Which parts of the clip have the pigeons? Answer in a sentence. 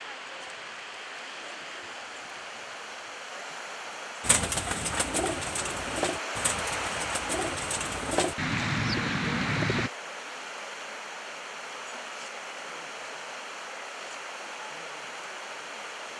You can hear the pigeons from 4.2 to 9.9 s.